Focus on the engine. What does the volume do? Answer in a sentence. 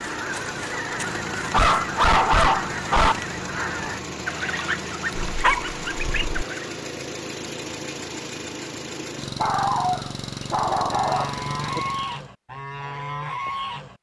The loudness of the engine stays about the same.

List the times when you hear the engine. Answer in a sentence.
The engine can be heard from 0.0 to 12.3 s.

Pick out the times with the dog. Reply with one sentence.
The dog can be heard from 1.5 to 3.1 s, from 5.2 to 6.5 s and from 9.4 to 11.8 s.